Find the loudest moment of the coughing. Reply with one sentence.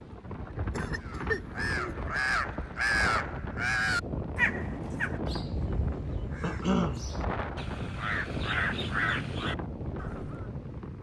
The loudest moment of the coughing is at 7 seconds.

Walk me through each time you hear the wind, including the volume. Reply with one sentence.
You can hear the wind from 0.0 to 10.9 s, at a steady volume.